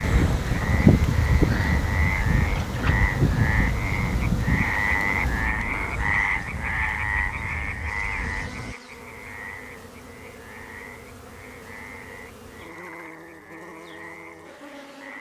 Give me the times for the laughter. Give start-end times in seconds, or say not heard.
not heard.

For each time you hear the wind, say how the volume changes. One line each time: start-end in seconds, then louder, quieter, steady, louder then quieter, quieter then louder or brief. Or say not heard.
0.0-8.8 quieter.